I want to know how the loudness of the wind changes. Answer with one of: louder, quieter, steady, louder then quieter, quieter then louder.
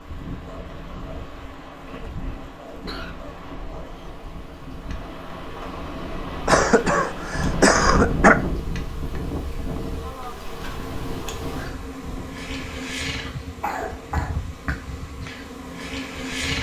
louder then quieter.